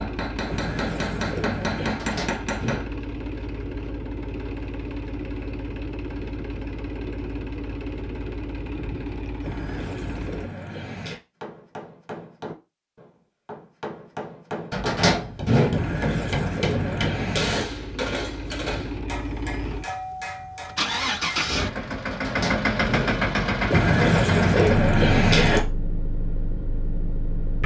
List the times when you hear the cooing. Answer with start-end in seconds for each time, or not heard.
0.5-2.0, 9.4-11.2, 15.7-17.6, 23.7-25.6.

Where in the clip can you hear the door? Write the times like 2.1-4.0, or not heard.
1.9-2.9, 14.7-15.8, 22.1-23.2.